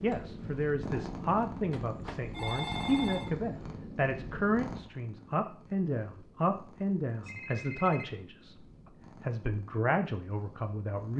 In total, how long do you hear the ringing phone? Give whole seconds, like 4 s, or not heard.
3 s.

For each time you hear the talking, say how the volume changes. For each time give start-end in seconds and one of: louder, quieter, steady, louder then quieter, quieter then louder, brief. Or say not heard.
0.0-8.6 steady
9.2-11.1 brief.